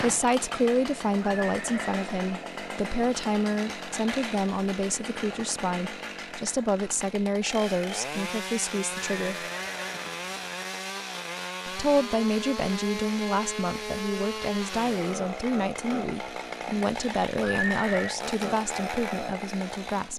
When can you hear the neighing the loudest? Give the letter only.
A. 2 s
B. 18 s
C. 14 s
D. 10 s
B.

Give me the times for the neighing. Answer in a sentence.
The neighing can be heard from 1.2 to 2.0 s, from 8.9 to 10.5 s and from 17.4 to 18.1 s.